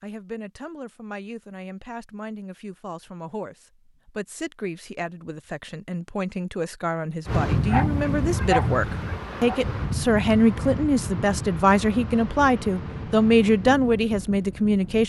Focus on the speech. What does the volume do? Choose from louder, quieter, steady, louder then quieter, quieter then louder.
louder.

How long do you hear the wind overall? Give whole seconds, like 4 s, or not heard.
8 s.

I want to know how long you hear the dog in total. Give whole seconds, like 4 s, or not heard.
2 s.